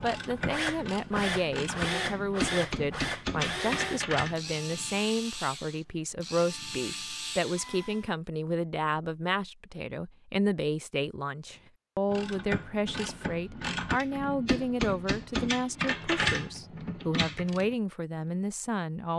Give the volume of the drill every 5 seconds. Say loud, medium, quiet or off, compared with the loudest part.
loud, medium, off, off.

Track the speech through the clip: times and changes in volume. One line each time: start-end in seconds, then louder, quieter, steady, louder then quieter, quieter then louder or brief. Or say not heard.
0.0-19.1 steady.